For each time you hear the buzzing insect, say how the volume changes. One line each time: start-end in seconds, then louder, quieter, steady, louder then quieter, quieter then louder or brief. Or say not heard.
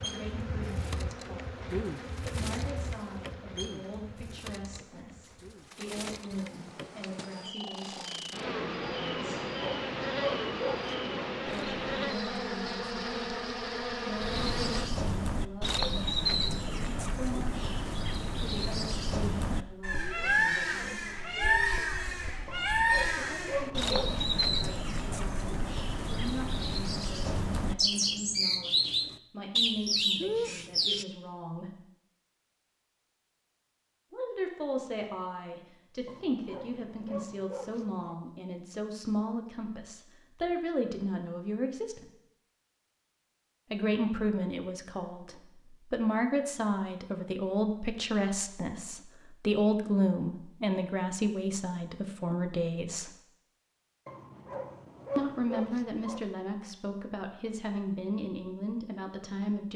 0.0-14.9 quieter then louder.